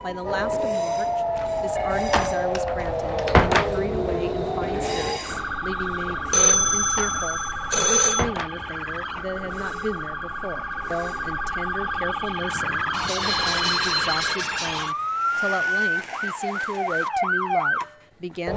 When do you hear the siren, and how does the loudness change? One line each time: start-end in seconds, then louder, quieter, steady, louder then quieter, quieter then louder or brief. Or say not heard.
0.0-18.5 quieter then louder.